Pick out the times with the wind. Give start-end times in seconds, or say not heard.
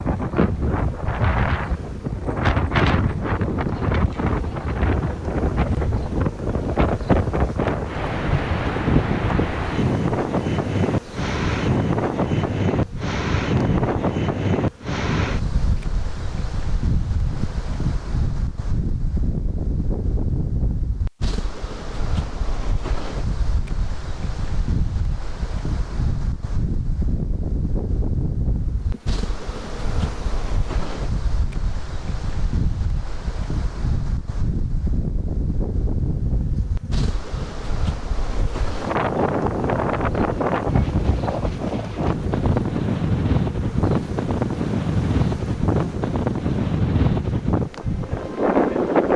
0.0-49.1.